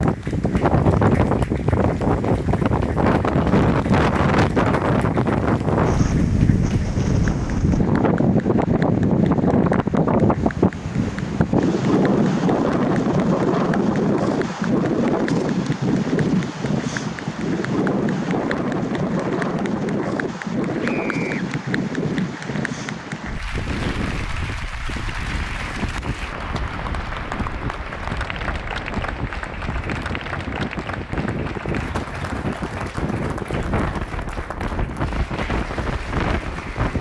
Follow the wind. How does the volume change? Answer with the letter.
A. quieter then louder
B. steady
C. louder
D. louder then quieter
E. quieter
E.